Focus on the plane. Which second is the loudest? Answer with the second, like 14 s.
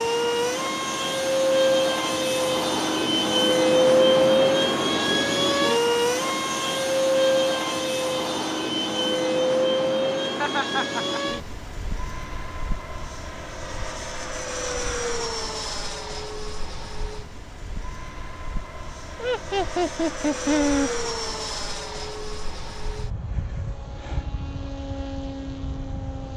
4 s.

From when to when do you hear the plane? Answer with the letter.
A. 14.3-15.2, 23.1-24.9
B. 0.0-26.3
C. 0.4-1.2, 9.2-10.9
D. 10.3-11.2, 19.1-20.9
B.